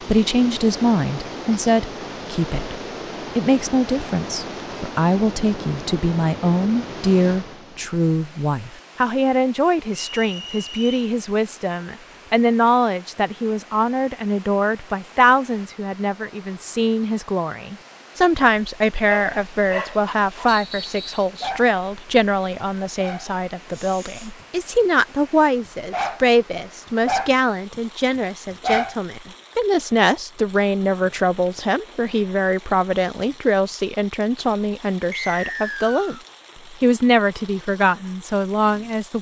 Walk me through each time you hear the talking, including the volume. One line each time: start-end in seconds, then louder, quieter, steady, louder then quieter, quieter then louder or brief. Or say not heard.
0.1-39.1 steady.